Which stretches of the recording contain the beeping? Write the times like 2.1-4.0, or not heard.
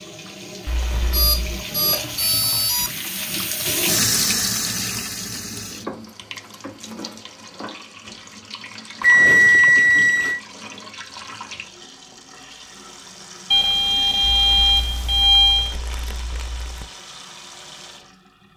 1.1-2.9, 9.0-10.4, 13.5-15.8.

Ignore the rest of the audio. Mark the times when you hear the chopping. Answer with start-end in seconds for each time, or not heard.
not heard.